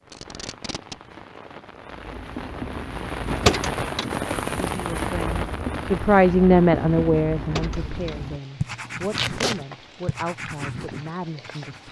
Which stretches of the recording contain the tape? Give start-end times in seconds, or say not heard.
0.1-1.0, 9.1-9.6.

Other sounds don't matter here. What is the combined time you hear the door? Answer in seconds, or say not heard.
2 s.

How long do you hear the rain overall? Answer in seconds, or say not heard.
12 s.